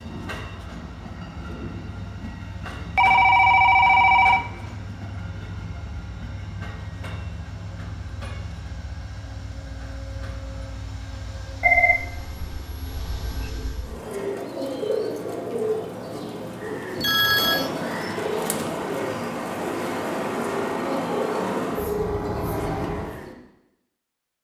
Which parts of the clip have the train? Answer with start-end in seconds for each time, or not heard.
0.0-14.2, 16.9-23.2.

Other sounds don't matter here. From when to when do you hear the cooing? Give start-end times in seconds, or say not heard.
13.8-23.4.